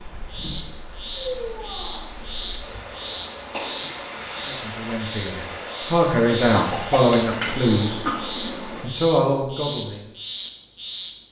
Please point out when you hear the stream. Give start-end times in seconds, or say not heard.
0.0-8.8.